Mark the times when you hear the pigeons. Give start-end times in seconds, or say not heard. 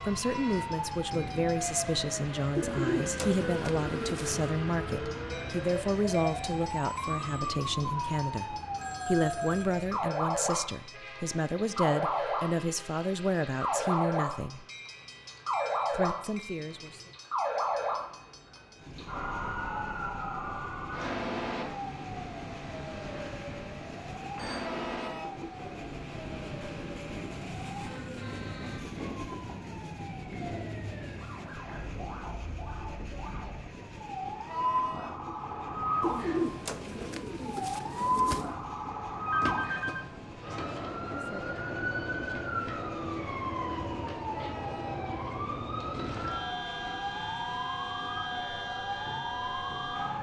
2.5-4.5, 36.0-38.5.